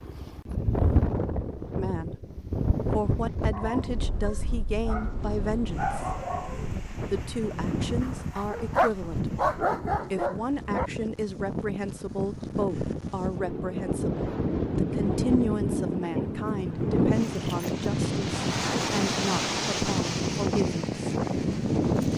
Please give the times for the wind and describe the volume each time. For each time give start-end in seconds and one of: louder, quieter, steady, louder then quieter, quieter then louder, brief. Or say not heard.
0.0-22.1 quieter then louder.